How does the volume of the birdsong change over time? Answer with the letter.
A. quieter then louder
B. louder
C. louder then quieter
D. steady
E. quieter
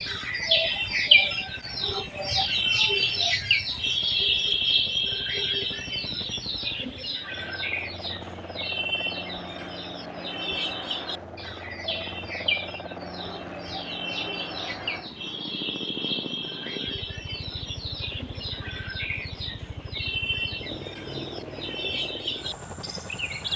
E.